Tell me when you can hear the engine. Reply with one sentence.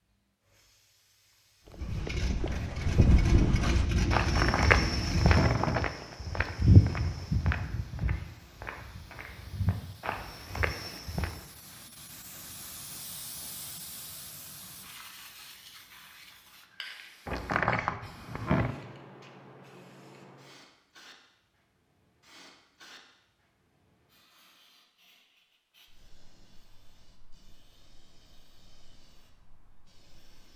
The engine can be heard from 1.8 to 5.4 s.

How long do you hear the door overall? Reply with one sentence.
You can hear the door for 3 seconds altogether.